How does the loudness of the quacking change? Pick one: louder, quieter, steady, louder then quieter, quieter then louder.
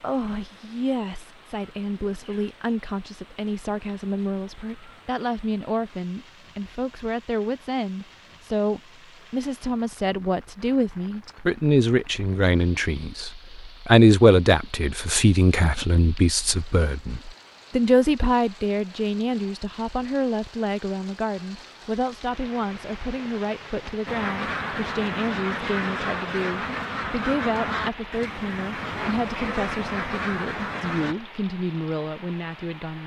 steady.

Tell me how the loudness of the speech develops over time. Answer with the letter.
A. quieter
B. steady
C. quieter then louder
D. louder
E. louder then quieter
E.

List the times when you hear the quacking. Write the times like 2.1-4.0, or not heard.
24.1-31.1.